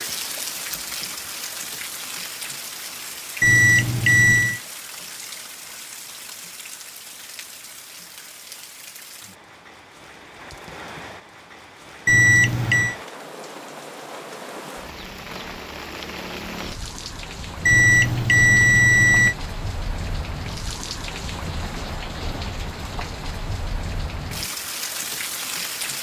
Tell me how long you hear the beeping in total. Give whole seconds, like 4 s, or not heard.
4 s.